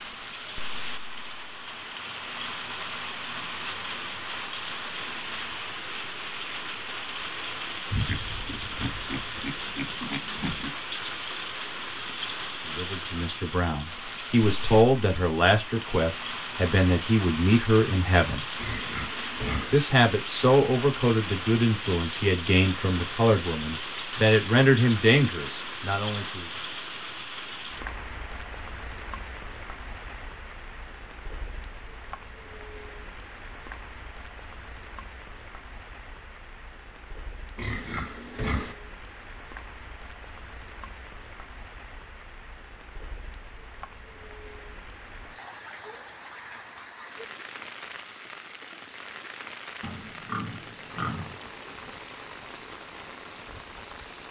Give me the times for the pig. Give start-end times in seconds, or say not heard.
7.9-10.7, 18.6-19.8, 37.5-38.8, 49.8-51.4.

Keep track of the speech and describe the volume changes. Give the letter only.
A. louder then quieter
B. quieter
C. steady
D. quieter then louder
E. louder
C.